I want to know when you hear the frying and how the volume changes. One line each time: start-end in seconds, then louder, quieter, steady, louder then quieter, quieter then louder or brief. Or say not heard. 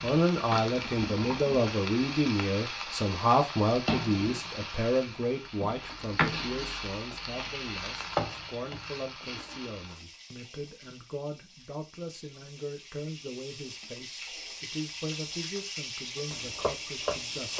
0.0-17.5 quieter then louder.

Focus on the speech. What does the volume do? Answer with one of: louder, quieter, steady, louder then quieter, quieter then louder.
quieter.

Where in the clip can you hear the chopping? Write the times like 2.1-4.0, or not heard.
16.3-17.5.